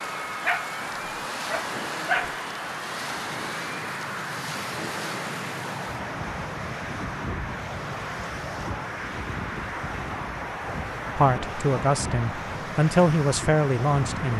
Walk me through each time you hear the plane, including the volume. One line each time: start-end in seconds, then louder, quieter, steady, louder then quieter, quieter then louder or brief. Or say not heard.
0.0-14.3 steady.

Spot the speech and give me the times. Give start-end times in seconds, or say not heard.
11.2-14.3.